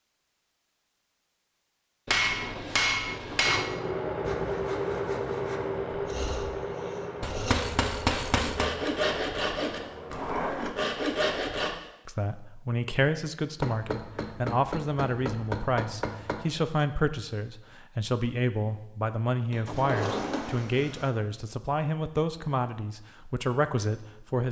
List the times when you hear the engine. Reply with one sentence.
You can hear the engine from 3.4 to 10.6 s.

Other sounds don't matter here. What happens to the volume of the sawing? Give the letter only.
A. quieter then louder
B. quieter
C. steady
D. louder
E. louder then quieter
D.